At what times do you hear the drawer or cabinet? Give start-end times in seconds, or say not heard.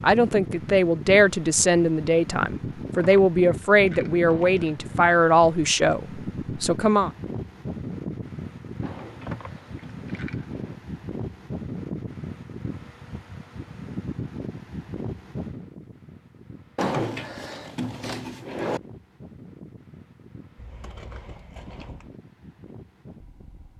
4.2-5.0, 8.8-10.8, 16.8-18.8.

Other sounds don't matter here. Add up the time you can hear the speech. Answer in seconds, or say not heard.
7 s.